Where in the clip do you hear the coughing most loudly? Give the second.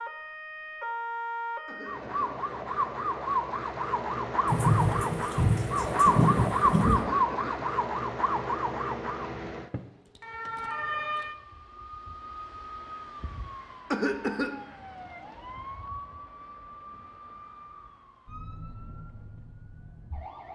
14 s.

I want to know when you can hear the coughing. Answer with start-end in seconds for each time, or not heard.
1.6-2.4, 7.0-7.7, 13.9-14.6.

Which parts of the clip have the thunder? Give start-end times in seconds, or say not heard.
4.5-7.0.